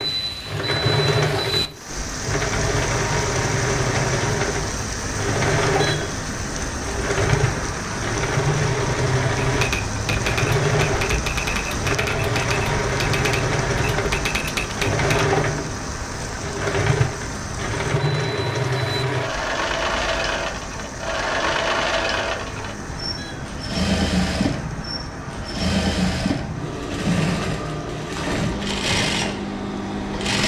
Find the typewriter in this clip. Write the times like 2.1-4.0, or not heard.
9.4-15.2.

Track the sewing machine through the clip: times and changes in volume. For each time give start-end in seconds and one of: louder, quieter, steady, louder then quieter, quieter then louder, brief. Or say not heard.
0.0-30.4 steady.